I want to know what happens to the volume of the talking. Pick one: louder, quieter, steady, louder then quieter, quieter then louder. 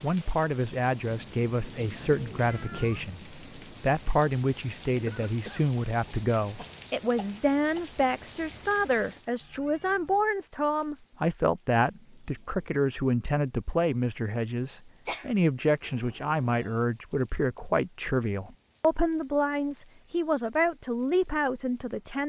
steady.